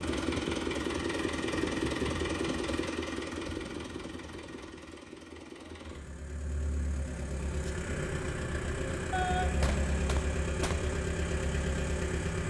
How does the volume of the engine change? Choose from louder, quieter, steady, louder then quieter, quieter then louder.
quieter then louder.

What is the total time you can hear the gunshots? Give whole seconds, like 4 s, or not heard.
2 s.